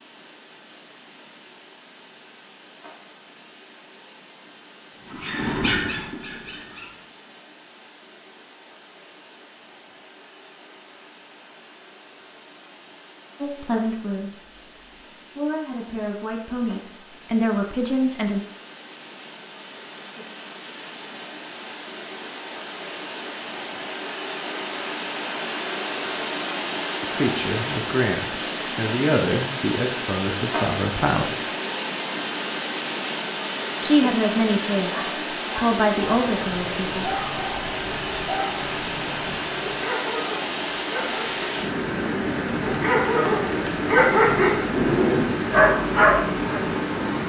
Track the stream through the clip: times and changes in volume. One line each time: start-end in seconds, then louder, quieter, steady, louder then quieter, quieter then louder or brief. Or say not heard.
0.0-47.2 louder.